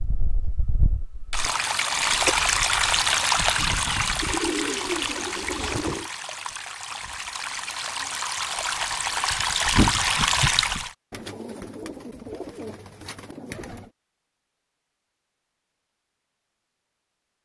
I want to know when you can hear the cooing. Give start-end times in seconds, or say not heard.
4.2-6.1, 11.1-13.9.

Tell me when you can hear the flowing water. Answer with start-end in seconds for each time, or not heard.
0.0-10.9.